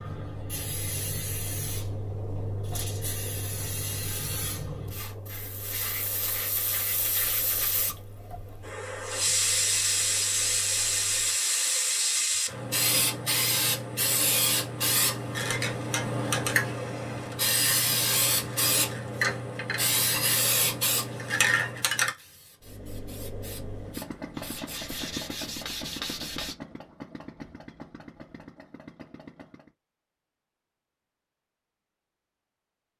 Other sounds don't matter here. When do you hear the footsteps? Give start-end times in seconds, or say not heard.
not heard.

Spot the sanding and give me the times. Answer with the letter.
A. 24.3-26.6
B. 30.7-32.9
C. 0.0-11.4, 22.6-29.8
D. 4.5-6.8
A.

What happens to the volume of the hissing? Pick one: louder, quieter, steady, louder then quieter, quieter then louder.
louder.